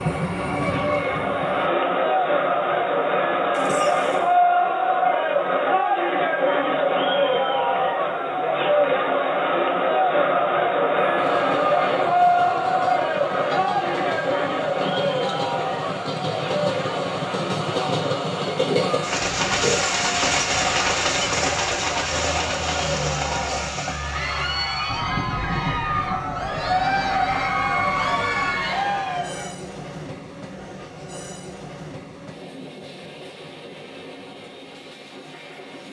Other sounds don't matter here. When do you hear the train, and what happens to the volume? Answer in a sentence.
You can hear the train briefly from 0.0 to 1.7 s; and from 10.9 to 35.8 s, getting louder then quieter.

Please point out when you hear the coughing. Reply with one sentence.
You can hear the coughing from 3.5 to 4.3 s and from 18.6 to 19.9 s.